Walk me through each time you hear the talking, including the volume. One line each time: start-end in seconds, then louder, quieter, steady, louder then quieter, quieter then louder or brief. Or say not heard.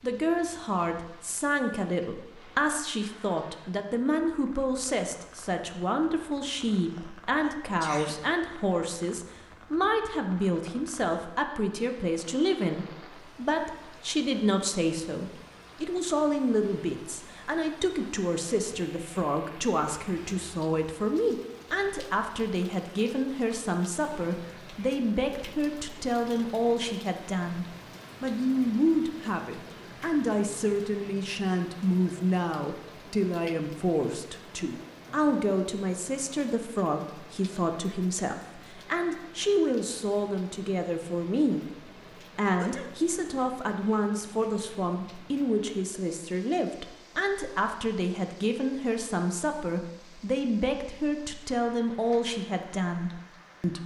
0.0-53.8 steady.